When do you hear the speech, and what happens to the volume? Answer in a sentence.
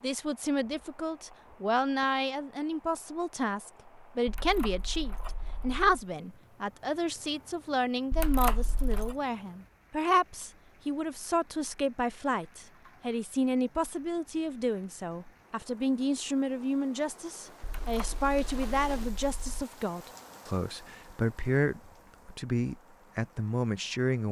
The speech can be heard from 0.0 to 24.2 s, at a steady volume.